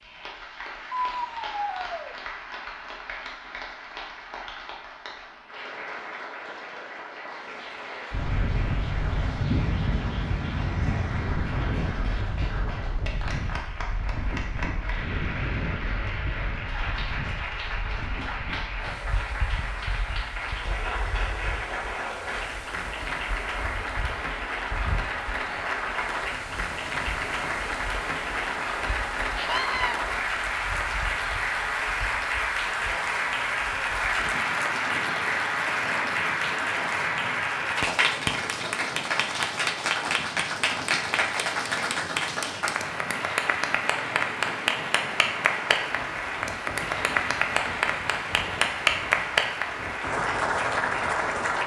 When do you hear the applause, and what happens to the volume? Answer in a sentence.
You can hear the applause from 0.0 to 51.6 s, getting louder.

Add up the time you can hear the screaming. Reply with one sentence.
The screaming can be heard for 2 seconds in total.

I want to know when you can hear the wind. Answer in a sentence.
The wind can be heard from 8.1 to 51.6 s.